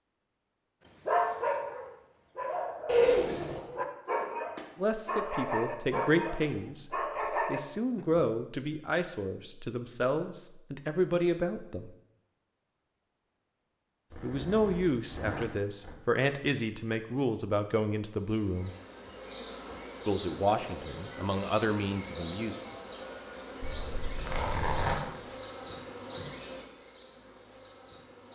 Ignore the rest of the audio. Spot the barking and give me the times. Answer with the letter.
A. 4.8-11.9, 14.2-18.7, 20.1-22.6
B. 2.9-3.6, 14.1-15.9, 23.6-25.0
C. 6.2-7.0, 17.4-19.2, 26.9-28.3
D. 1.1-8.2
D.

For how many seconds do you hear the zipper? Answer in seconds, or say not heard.
4 s.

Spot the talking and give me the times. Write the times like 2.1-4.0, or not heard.
4.8-11.9, 14.2-18.7, 20.1-22.6.